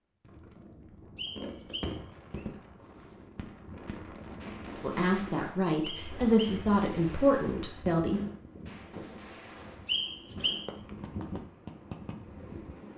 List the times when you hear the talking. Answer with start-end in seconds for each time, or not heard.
4.8-8.2.